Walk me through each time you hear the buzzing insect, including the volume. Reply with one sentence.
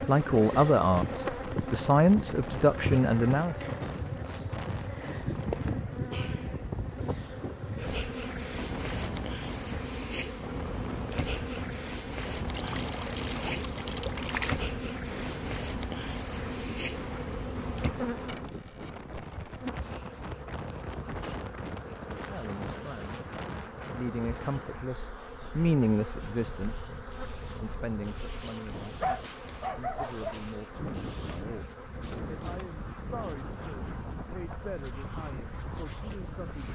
The buzzing insect can be heard from 0.0 to 36.7 s, getting quieter.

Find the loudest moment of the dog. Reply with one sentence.
The loudest moment of the dog is at 29 seconds.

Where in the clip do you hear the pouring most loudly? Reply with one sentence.
The loudest moment of the pouring is at 14 seconds.